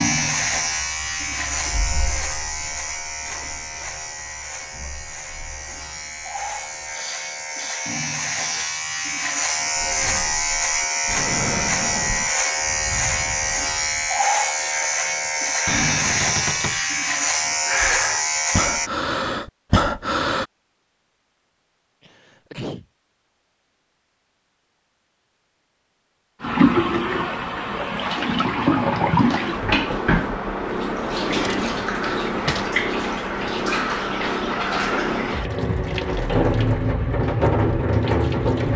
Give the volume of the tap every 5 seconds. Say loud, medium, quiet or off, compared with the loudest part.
quiet, quiet, off, off, off, loud, loud, loud.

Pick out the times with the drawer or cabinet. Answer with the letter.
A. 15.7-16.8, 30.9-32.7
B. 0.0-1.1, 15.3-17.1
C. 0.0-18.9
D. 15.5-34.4
A.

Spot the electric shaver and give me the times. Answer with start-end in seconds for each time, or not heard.
0.0-18.9.